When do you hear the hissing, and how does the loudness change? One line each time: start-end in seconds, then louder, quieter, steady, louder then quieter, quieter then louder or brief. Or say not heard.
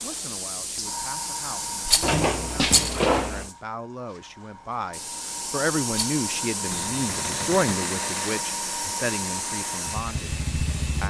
0.0-11.0 quieter then louder.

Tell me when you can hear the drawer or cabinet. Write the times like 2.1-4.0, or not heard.
2.0-3.5, 6.7-7.8.